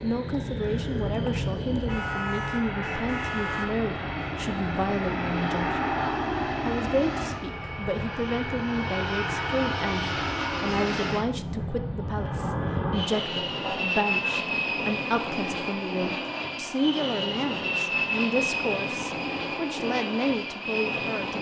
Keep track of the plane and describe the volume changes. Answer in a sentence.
The loudness of the plane stays about the same.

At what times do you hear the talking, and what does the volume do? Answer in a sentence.
The talking can be heard from 0.0 to 21.3 s, at a steady volume.